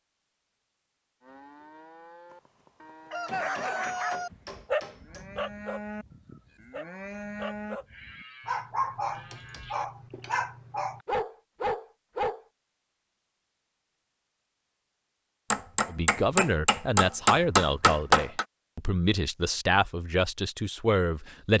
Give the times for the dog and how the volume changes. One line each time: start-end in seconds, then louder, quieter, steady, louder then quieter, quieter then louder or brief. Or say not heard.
3.3-12.4 quieter then louder.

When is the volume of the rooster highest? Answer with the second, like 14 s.
4 s.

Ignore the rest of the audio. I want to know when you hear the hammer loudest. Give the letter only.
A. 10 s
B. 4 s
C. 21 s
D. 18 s
D.